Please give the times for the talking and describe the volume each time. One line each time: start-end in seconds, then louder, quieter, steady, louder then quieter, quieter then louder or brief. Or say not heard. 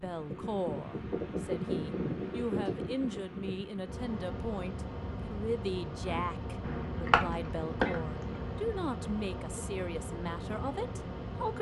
0.0-11.5 steady.